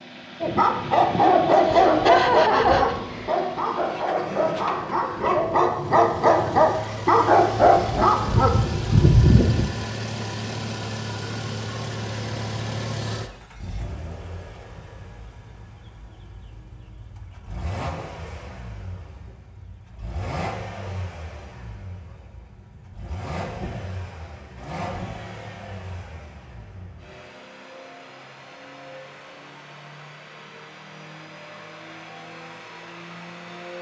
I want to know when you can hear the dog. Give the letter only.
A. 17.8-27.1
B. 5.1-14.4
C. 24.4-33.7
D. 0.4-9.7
D.